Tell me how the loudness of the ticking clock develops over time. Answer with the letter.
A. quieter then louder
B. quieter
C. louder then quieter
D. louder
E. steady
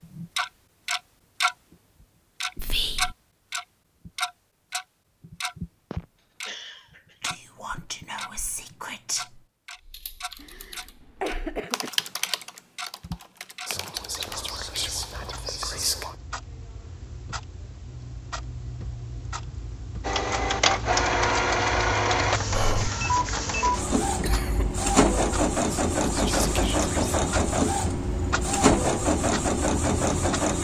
A.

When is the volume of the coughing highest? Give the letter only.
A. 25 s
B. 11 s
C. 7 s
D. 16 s
B.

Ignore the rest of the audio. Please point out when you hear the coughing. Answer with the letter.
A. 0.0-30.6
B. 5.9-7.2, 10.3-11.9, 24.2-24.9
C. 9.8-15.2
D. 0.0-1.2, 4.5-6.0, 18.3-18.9
B.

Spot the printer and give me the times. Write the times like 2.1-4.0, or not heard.
20.0-30.6.